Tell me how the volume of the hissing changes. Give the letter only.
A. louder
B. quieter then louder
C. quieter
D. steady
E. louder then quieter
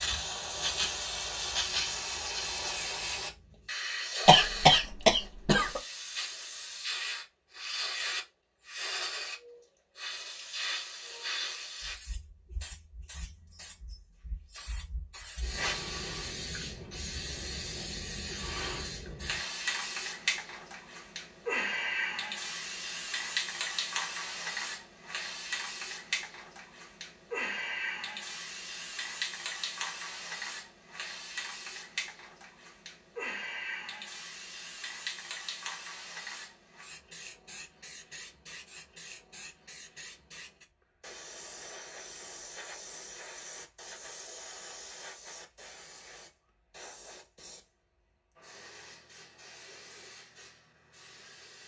C.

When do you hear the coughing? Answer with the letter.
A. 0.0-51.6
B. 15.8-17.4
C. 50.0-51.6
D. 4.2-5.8
D.